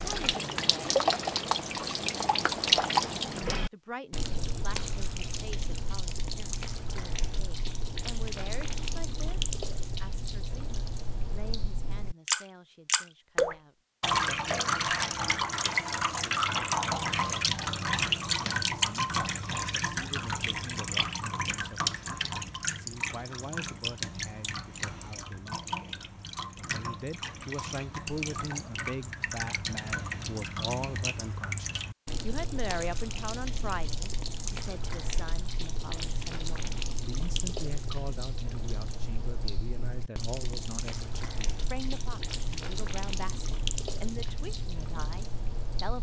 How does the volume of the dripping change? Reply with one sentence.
The volume of the dripping goes down.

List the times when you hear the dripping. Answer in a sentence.
You can hear the dripping from 0.0 to 45.9 s.